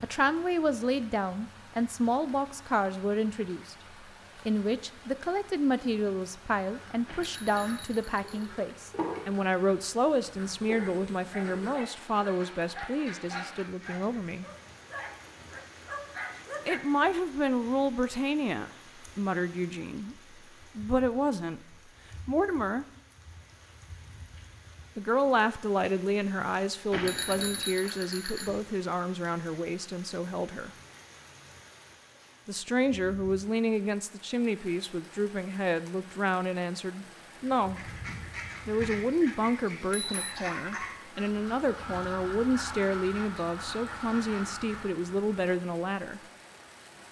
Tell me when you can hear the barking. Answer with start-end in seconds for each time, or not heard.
10.7-16.8.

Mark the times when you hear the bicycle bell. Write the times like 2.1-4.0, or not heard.
7.0-8.5, 26.9-28.6, 39.7-40.4.